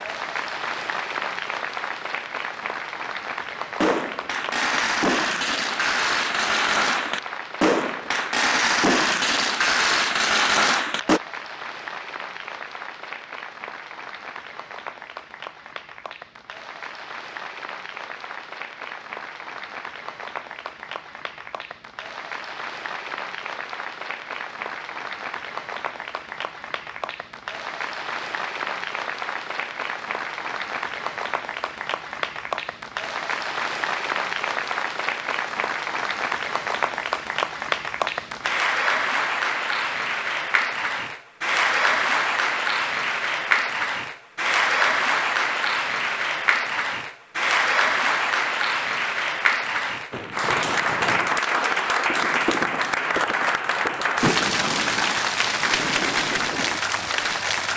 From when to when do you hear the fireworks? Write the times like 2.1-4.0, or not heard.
3.8-11.2, 50.1-57.5.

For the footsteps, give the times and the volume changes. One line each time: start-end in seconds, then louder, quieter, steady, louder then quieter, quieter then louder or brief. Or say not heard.
not heard.